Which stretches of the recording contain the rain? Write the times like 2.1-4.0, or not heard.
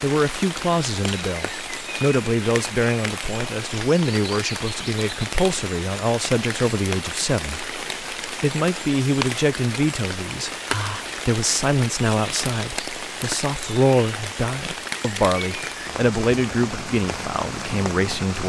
0.0-18.4.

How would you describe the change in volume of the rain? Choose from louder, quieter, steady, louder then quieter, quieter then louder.
steady.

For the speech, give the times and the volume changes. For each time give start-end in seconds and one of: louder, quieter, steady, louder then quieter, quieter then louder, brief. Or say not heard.
0.0-18.4 steady.